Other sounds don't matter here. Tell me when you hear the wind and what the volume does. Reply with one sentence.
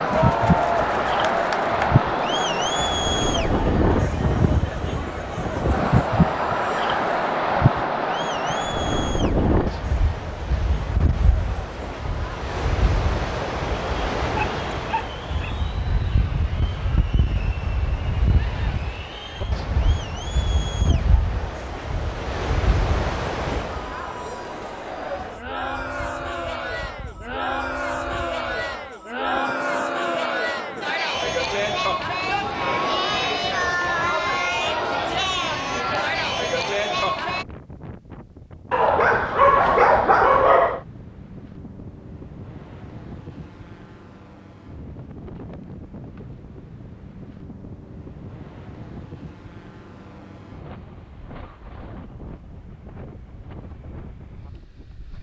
The wind can be heard from 0.0 to 55.1 s, getting quieter.